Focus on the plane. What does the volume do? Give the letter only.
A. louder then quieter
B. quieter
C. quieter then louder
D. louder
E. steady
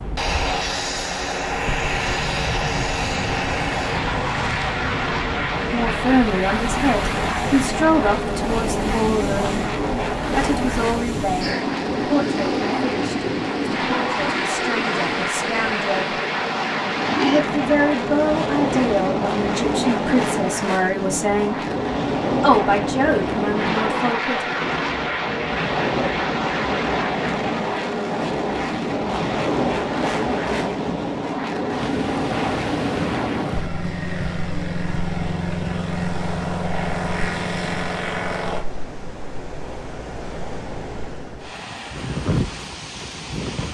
E.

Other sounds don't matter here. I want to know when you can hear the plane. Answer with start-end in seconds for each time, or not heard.
0.0-38.6.